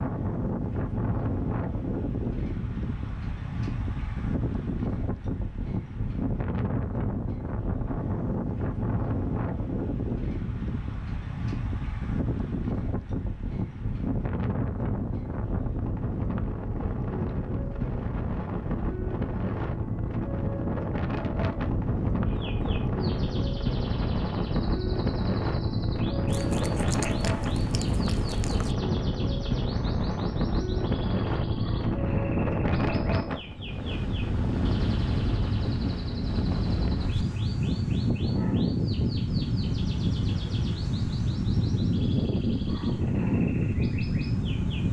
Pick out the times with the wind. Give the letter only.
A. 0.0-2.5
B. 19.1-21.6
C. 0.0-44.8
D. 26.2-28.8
C.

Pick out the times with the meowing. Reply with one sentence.
The meowing can be heard from 26.2 to 28.8 s.